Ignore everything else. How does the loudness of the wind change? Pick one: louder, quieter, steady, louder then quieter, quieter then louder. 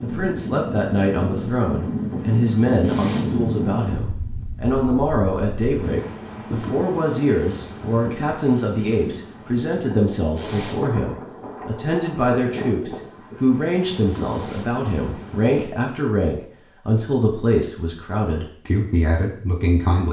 quieter.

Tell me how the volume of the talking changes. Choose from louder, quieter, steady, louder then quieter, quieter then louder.
steady.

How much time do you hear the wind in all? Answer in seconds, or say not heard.
16 s.